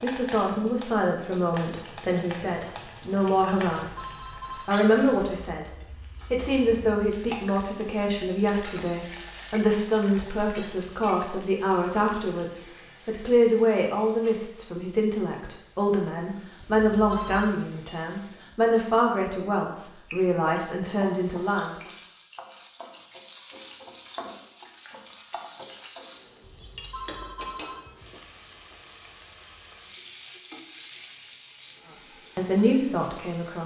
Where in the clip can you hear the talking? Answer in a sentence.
You can hear the talking from 0.0 to 3.9 s, from 4.7 to 5.7 s, from 6.3 to 21.8 s and from 32.4 to 33.6 s.